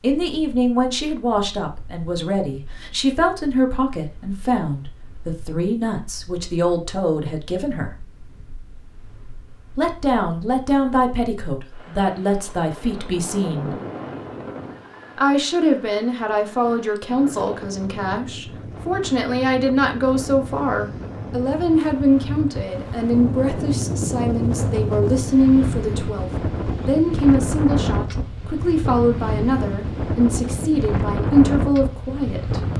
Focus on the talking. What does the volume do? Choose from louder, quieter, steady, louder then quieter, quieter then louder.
steady.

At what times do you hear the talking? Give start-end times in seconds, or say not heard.
0.0-7.9, 9.8-13.8, 15.2-32.6.